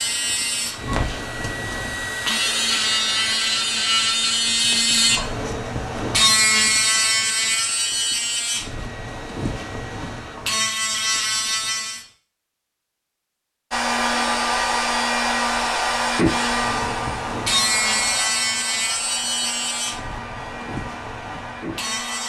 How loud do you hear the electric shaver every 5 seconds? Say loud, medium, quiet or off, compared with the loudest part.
loud, loud, loud, loud, medium.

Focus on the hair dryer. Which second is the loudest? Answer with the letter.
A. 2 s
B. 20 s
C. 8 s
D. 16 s
D.